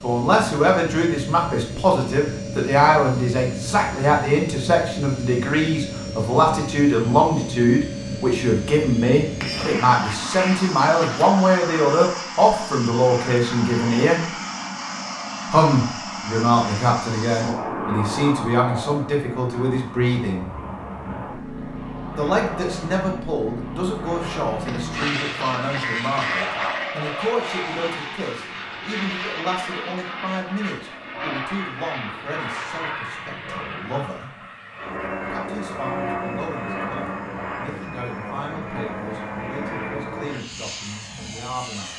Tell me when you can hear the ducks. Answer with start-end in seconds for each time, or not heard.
9.6-11.3, 24.6-27.0.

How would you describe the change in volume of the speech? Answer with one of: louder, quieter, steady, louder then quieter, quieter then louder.
quieter.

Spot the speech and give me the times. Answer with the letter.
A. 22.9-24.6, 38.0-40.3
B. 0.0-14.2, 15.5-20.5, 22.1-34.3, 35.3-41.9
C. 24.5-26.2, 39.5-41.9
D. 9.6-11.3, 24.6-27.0
B.